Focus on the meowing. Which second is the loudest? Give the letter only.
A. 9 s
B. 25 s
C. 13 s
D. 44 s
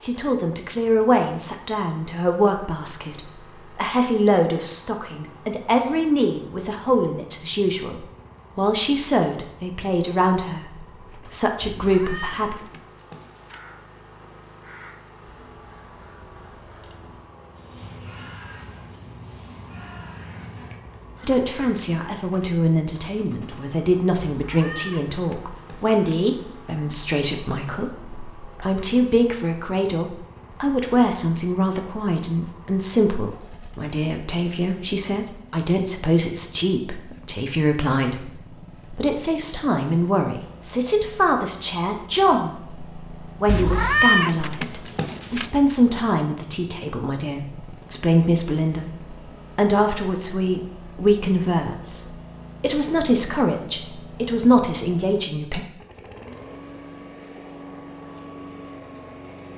D.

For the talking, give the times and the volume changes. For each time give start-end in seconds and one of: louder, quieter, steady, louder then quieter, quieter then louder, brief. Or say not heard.
0.1-12.6 steady
21.2-55.6 steady.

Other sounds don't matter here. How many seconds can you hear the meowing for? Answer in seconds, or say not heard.
6 s.